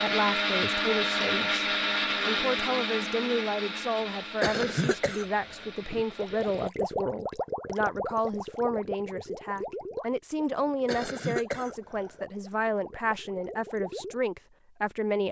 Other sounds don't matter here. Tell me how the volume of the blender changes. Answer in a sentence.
The loudness of the blender goes down.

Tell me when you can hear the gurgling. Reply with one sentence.
You can hear the gurgling from 5.8 to 14.2 s.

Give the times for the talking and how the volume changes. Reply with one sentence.
The talking can be heard from 0.0 to 15.2 s, at a steady volume.